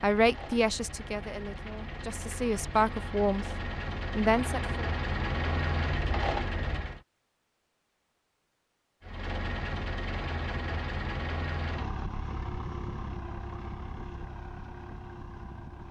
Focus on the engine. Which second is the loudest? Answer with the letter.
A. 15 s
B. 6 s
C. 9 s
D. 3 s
B.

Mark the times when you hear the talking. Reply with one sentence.
You can hear the talking from 0.0 to 4.8 s.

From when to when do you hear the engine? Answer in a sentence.
The engine can be heard from 0.0 to 7.0 s and from 9.0 to 15.8 s.